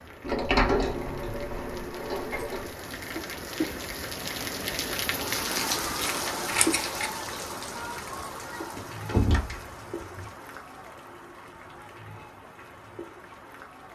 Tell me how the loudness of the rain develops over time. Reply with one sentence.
The loudness of the rain goes up, then down.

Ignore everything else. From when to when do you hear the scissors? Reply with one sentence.
You can hear the scissors from 6.0 to 7.1 s.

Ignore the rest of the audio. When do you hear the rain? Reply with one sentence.
The rain can be heard from 0.0 to 13.9 s.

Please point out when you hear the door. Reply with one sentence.
The door can be heard from 0.2 to 2.7 s and from 8.8 to 10.2 s.